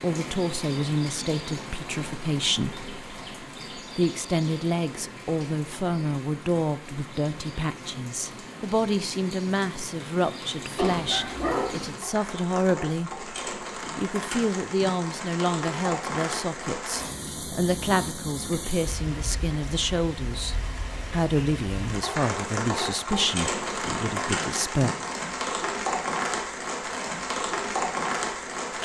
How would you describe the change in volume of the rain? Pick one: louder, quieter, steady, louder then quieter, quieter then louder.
louder.